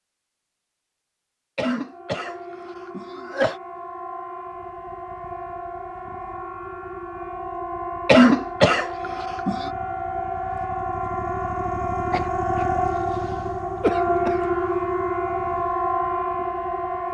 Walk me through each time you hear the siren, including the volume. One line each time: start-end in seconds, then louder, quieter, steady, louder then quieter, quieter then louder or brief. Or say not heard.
1.8-17.1 louder.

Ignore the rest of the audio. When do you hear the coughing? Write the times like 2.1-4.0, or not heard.
1.6-3.5, 8.1-9.7, 12.1-14.4.